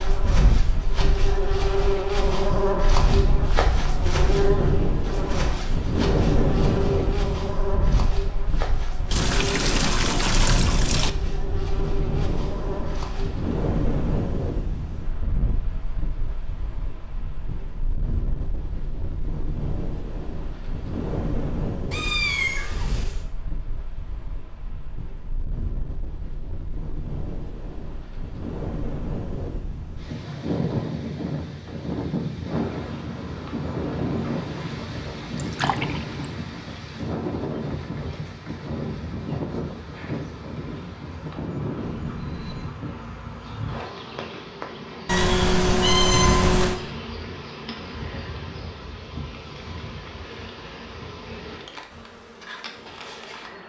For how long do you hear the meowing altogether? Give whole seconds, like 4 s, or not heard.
3 s.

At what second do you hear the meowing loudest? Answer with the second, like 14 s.
46 s.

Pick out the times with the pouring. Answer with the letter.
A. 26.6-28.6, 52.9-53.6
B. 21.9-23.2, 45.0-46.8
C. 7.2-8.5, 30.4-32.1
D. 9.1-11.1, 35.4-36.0
D.